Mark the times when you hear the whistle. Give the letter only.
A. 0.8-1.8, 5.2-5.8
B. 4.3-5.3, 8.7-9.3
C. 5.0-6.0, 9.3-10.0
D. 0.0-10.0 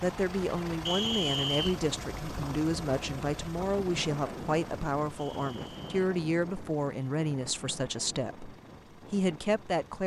A.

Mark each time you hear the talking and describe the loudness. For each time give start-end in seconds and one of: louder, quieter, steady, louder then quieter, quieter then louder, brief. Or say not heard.
0.0-10.0 steady.